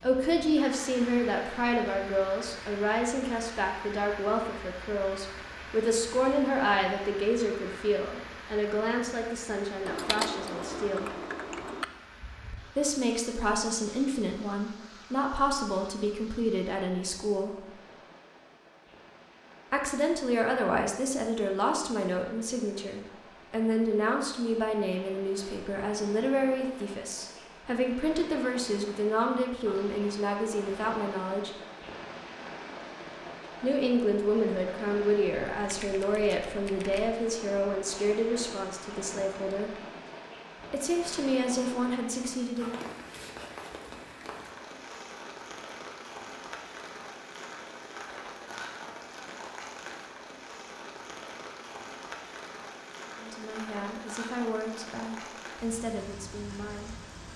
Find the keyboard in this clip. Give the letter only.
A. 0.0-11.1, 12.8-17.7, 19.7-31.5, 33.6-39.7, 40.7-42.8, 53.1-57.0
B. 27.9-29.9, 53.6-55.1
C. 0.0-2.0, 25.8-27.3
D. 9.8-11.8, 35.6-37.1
D.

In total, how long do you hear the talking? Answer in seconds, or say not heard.
40 s.